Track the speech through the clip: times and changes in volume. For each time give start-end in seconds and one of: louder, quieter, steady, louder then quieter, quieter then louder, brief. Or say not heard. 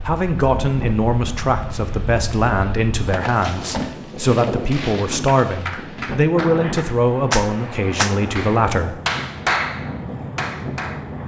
0.1-8.9 steady.